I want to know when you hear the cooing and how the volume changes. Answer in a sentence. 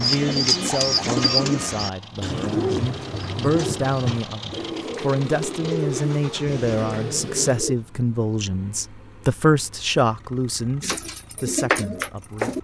The cooing can be heard from 0.0 to 7.8 s, getting quieter; and briefly from 10.8 to 12.5 s.